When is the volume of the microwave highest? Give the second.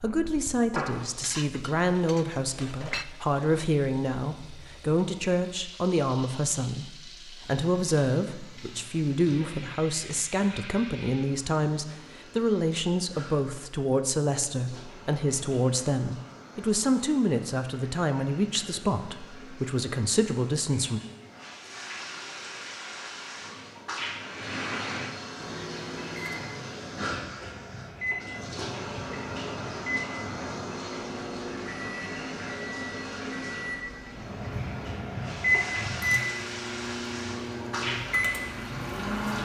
36 s.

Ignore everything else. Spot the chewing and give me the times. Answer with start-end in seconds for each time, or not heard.
not heard.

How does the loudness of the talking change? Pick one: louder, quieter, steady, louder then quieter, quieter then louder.
steady.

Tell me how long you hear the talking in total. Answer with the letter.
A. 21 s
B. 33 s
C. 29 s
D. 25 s
A.